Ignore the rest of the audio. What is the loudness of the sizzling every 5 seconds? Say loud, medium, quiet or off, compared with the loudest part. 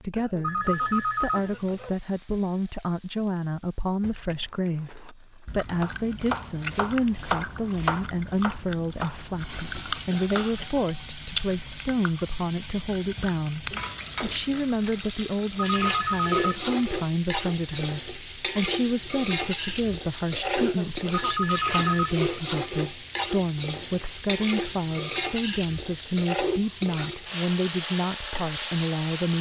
quiet, medium, loud, loud, loud, loud.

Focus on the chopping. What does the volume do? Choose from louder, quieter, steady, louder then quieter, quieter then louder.
quieter.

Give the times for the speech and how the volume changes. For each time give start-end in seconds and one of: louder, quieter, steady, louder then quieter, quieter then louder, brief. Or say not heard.
0.0-29.3 steady.